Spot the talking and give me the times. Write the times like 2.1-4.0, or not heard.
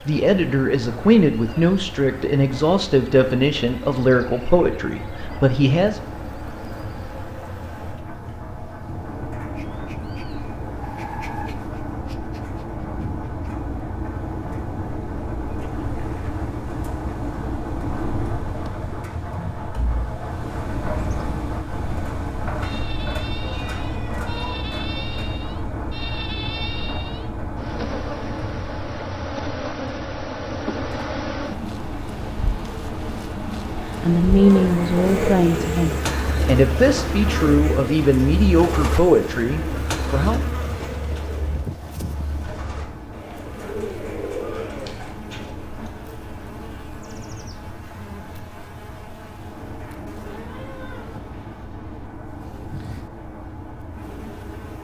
0.1-6.0, 34.0-40.4.